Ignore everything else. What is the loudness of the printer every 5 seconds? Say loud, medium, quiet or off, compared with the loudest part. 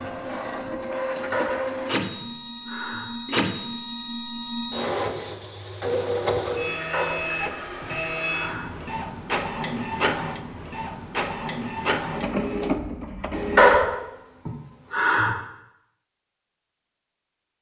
loud, loud, loud, off.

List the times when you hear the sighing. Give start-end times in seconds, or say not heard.
1.3-3.1, 6.9-8.7, 13.6-15.3.